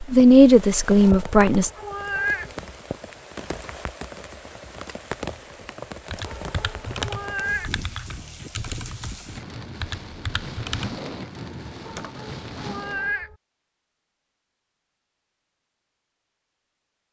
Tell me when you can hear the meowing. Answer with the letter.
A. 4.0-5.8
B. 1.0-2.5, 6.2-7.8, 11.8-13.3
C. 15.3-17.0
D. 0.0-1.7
B.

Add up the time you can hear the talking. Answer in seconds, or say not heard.
2 s.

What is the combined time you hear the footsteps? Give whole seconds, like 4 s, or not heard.
not heard.